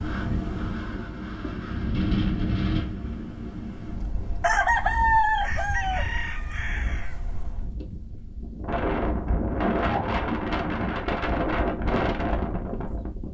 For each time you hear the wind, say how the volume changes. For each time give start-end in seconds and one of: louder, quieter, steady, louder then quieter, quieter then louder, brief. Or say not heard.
0.0-13.2 quieter then louder.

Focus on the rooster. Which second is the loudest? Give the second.
5 s.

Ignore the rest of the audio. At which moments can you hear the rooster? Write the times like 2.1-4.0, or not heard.
4.4-7.3.